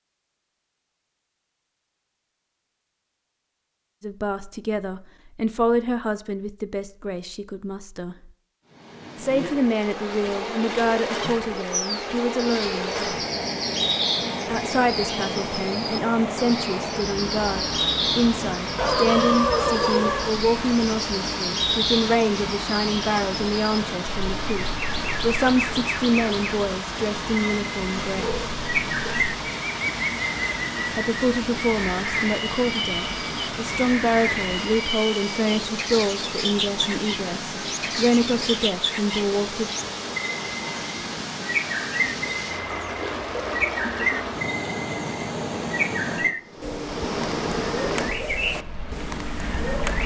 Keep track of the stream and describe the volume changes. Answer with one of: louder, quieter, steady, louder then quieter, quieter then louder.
steady.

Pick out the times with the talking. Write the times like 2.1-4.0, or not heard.
4.0-8.3, 9.2-13.2, 14.4-28.4, 30.9-39.7.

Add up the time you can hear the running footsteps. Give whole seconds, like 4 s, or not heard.
not heard.